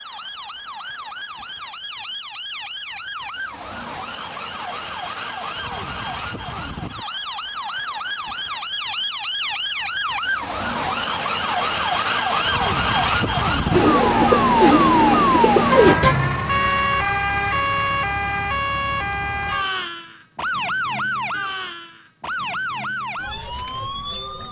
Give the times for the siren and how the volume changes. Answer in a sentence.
You can hear the siren from 0.0 to 24.4 s, getting louder then quieter.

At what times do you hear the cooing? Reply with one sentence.
You can hear the cooing from 13.7 to 15.9 s.